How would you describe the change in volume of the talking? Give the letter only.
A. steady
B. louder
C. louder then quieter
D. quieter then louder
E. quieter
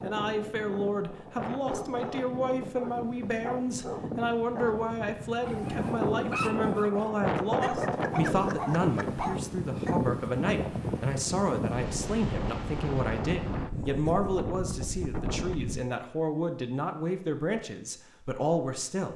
A.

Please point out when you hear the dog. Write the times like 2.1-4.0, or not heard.
1.6-10.0.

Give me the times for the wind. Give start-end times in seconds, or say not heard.
0.0-15.8.